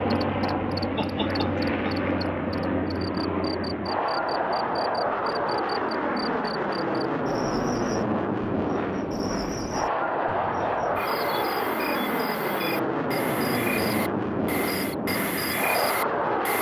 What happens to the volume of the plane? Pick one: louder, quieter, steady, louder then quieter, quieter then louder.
steady.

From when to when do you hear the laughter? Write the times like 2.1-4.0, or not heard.
0.9-2.1.